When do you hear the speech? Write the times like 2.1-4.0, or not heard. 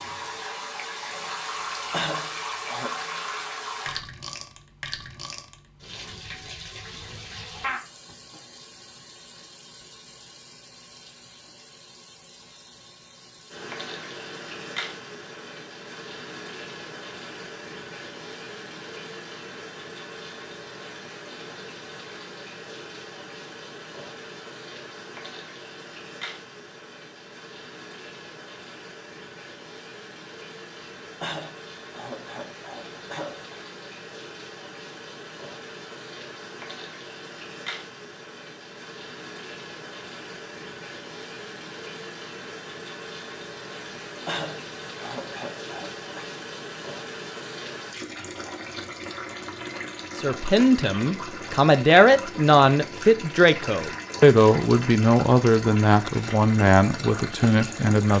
50.1-58.1.